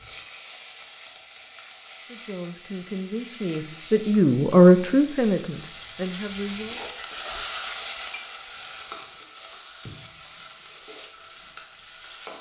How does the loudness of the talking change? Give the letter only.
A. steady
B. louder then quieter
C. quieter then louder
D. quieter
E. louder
B.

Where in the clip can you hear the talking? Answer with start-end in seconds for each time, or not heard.
2.0-6.8.